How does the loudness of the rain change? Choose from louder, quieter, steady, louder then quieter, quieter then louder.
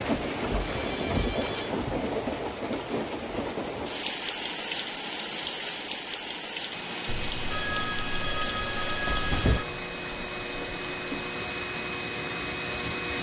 quieter.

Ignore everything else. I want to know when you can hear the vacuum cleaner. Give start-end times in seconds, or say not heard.
6.7-13.1.